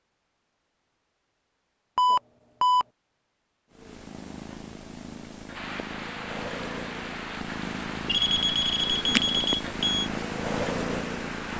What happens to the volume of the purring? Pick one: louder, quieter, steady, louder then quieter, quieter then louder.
louder.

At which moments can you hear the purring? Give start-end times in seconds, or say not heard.
3.7-11.5.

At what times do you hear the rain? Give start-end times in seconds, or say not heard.
5.5-11.5.